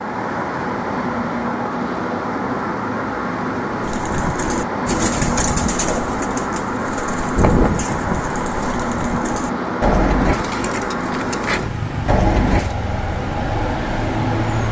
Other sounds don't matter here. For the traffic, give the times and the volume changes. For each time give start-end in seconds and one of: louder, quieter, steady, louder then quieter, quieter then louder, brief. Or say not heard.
0.0-14.6 steady.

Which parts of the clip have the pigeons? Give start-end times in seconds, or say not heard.
3.8-12.8.